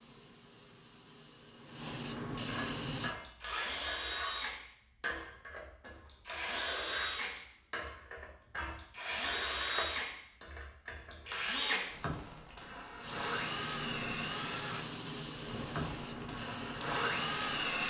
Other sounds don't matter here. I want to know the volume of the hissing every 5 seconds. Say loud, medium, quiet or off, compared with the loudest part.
loud, off, loud, loud.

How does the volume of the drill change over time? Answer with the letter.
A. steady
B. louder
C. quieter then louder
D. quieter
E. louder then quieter
A.